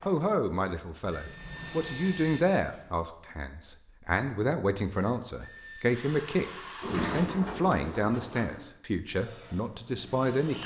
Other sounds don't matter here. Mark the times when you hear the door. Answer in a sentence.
The door can be heard from 1.1 to 3.0 s and from 6.8 to 8.7 s.